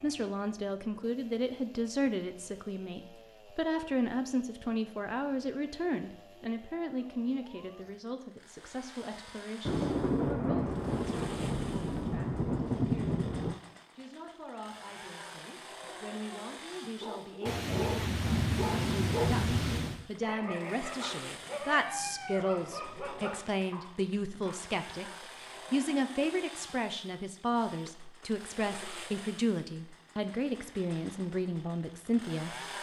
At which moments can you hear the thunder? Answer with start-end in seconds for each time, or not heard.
9.7-13.6, 17.4-20.0.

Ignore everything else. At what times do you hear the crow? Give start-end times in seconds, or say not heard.
not heard.